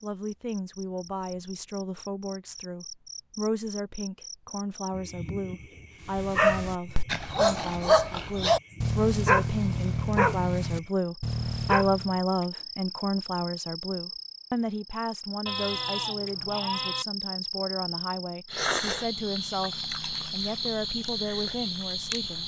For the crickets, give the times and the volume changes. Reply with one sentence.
The crickets can be heard from 0.0 to 22.4 s, getting louder.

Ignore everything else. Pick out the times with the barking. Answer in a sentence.
You can hear the barking from 6.2 to 12.2 s.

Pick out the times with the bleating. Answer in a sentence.
The bleating can be heard from 15.4 to 17.1 s.